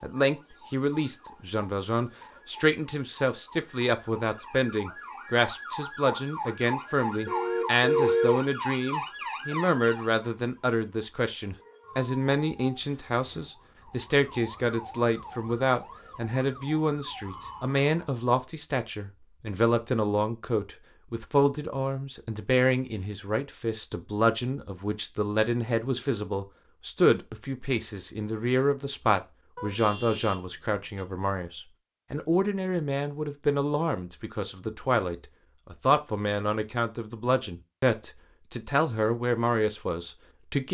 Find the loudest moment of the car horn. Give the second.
8 s.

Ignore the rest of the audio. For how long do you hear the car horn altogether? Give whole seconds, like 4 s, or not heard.
3 s.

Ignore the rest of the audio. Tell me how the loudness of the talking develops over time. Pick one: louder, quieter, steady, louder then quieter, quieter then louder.
steady.